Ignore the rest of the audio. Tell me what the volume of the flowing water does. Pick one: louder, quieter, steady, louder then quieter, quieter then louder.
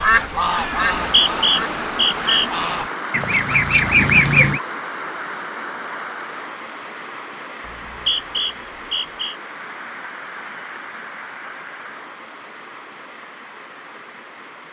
quieter.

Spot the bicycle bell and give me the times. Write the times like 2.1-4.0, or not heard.
not heard.